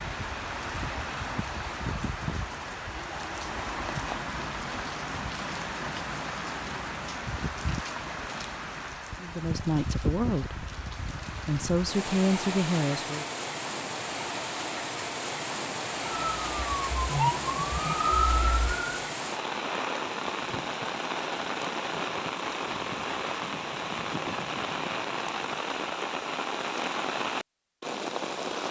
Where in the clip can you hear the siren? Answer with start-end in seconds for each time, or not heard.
16.3-19.1.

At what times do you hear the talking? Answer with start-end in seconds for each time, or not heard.
9.2-10.6, 11.4-13.2.